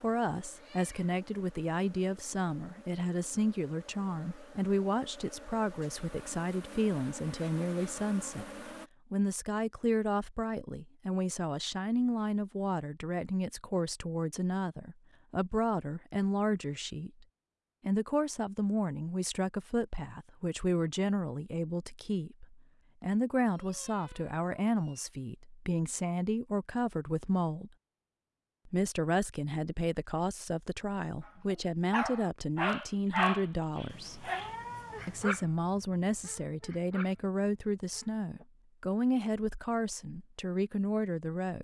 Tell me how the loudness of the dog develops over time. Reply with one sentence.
The volume of the dog goes down, then up.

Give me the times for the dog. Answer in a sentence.
You can hear the dog from 31.9 to 38.5 s.